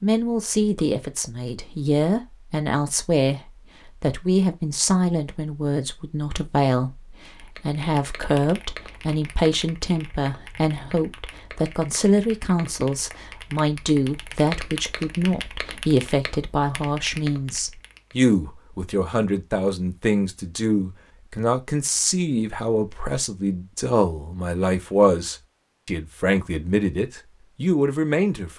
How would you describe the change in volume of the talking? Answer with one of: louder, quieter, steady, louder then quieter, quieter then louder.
steady.